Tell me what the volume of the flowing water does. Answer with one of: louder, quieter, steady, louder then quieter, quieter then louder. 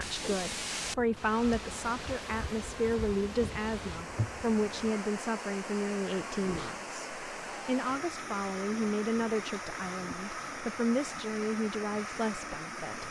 steady.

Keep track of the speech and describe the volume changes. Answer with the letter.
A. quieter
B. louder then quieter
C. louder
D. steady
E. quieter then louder
D.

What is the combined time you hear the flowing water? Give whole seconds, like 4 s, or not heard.
13 s.